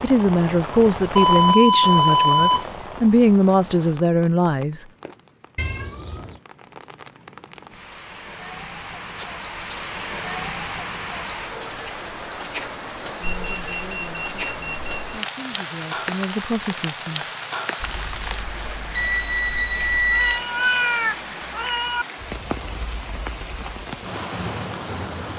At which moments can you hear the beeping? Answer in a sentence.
You can hear the beeping from 1.1 to 2.9 s, from 13.2 to 15.1 s and from 17.8 to 20.4 s.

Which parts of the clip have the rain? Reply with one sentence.
You can hear the rain from 0.0 to 25.3 s.